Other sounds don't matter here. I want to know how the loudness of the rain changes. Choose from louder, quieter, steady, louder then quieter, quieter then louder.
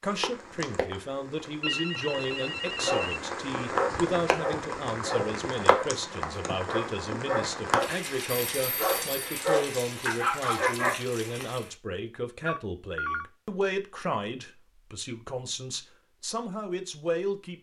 louder then quieter.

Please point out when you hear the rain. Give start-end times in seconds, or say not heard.
0.0-11.8.